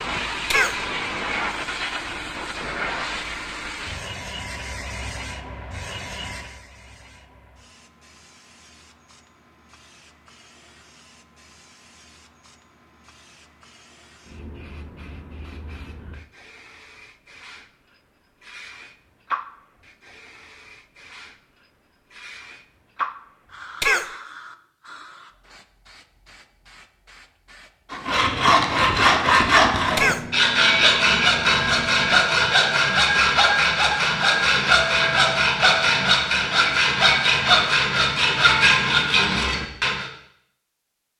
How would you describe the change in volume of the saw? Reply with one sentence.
The volume of the saw stays about the same.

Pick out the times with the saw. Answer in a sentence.
You can hear the saw from 27.9 to 40.1 s.